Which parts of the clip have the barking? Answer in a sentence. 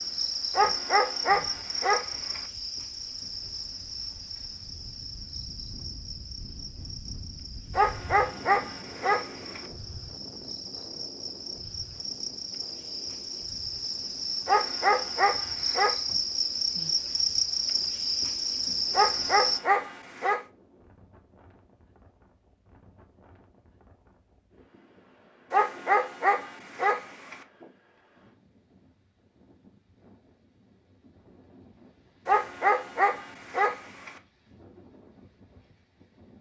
The barking can be heard from 0.6 to 2.4 s, from 7.8 to 9.6 s, from 14.4 to 15.9 s, from 18.9 to 20.4 s, from 25.5 to 27.4 s and from 32.2 to 34.1 s.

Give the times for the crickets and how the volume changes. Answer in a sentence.
The crickets can be heard from 0.0 to 19.6 s, getting quieter then louder.